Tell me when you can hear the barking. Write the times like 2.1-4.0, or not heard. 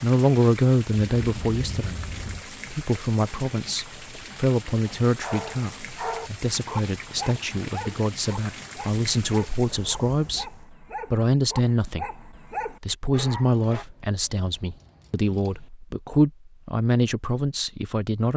4.8-13.8.